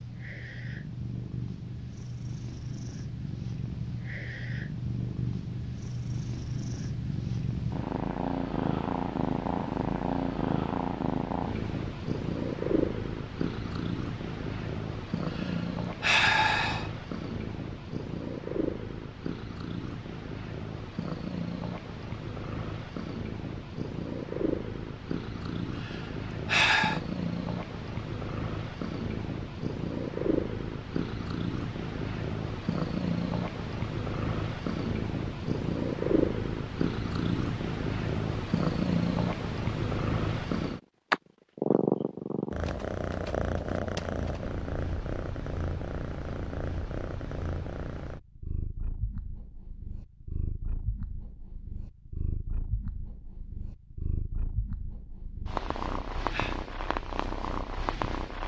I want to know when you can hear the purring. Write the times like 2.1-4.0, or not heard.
0.0-58.4.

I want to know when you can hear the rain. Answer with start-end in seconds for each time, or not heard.
not heard.